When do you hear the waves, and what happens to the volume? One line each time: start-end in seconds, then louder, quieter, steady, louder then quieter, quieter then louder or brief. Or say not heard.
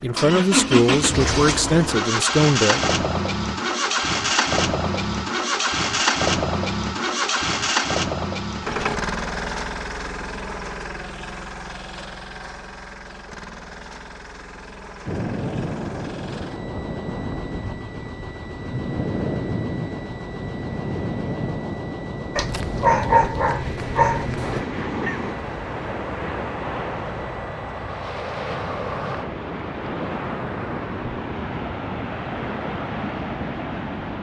15.1-34.1 steady.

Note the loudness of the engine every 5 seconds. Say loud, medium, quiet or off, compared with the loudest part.
loud, loud, quiet, quiet, quiet, quiet, off.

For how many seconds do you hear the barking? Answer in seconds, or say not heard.
2 s.